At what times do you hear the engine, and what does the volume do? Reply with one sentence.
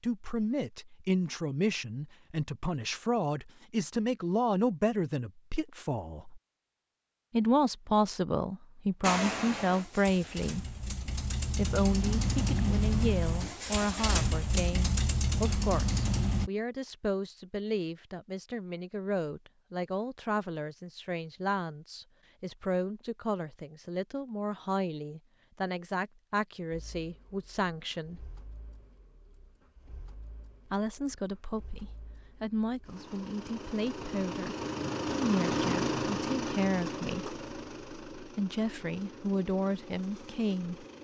You can hear the engine from 9.0 to 16.5 s, getting louder; and from 26.7 to 41.0 s, getting louder then quieter.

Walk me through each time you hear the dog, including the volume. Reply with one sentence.
You can't hear the dog here.